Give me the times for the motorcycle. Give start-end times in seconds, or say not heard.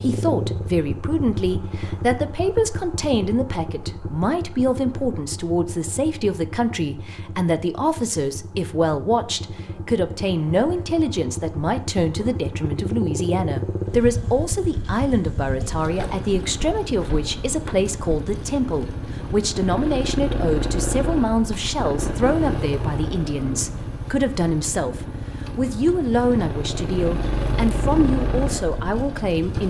0.0-29.6.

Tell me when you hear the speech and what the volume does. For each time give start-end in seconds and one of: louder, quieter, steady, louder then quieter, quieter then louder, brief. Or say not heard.
0.0-29.6 steady.